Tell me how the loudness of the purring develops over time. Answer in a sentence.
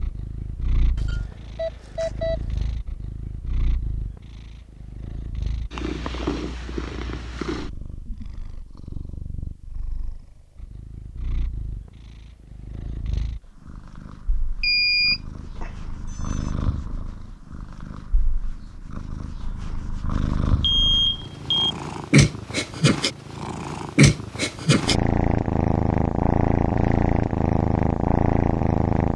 The loudness of the purring goes up.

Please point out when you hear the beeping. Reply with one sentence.
The beeping can be heard from 0.9 to 2.4 s, from 14.6 to 16.5 s and from 20.6 to 21.8 s.